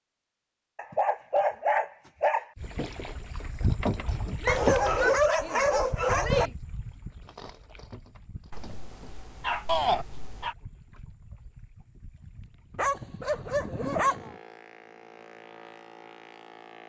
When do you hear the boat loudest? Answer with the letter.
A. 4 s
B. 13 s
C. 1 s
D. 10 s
A.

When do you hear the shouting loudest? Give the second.
10 s.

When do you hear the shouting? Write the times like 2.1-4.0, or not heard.
4.4-6.5, 9.7-10.1.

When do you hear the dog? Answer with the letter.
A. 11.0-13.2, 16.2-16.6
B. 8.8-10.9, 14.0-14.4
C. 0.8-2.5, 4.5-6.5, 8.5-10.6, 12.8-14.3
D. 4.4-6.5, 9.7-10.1
C.